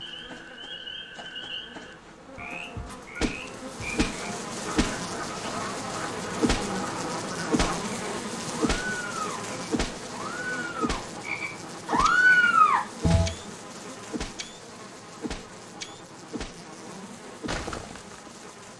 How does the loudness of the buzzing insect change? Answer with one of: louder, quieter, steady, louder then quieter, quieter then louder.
louder then quieter.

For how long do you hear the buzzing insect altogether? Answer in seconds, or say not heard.
19 s.